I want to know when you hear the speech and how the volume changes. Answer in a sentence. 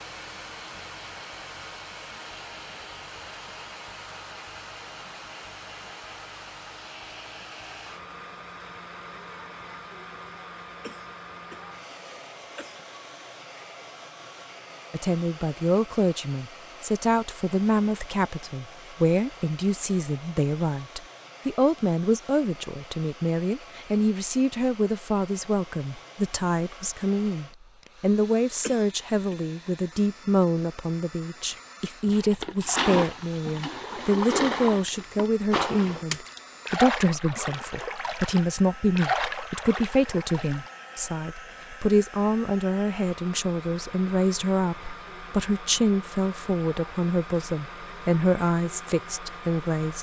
You can hear the speech from 14.9 to 49.9 s, at a steady volume.